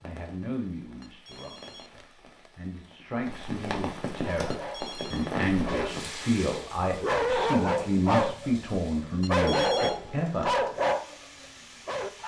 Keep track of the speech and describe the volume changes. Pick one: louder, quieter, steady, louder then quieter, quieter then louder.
louder.